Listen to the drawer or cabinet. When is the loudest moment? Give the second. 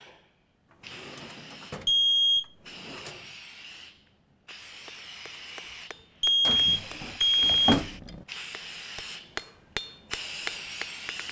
8 s.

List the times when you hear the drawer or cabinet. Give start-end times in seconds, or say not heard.
0.7-3.4, 6.5-8.2.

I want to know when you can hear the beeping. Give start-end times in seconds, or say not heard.
1.9-2.5, 6.2-7.8.